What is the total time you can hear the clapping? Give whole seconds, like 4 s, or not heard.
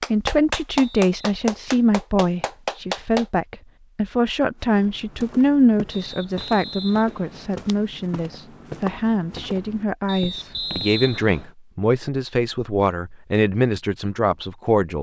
3 s.